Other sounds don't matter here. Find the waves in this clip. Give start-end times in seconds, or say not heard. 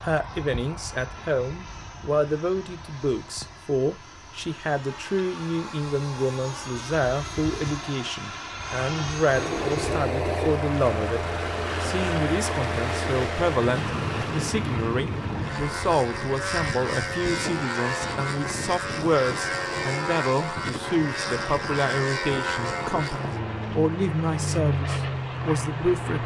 9.3-26.2.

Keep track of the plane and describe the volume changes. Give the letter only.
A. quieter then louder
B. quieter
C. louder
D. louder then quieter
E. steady
C.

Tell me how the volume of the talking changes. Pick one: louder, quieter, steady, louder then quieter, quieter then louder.
steady.